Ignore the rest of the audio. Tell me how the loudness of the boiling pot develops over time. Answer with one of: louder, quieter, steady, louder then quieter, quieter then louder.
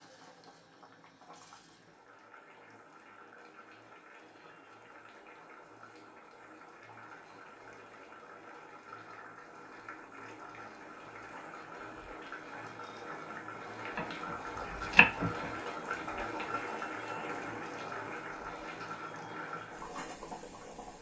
louder.